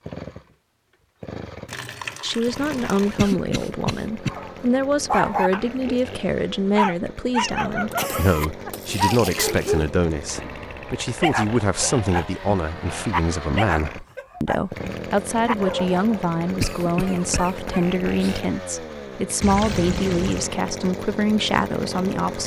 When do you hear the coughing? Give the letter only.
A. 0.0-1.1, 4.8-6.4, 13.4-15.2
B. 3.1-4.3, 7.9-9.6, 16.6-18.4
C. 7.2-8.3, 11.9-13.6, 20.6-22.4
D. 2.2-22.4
B.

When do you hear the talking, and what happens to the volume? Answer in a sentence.
You can hear the talking from 2.2 to 22.4 s, at a steady volume.